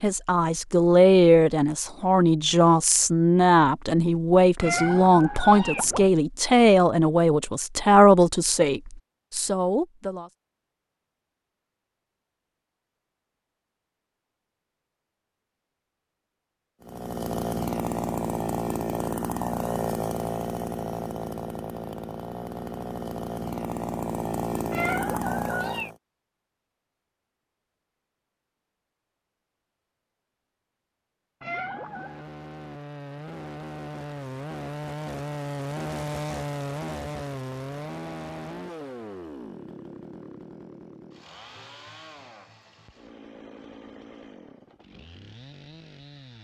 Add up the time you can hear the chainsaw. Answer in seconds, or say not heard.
24 s.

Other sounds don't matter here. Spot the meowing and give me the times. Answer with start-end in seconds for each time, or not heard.
4.6-6.1, 24.7-25.9, 31.4-32.2.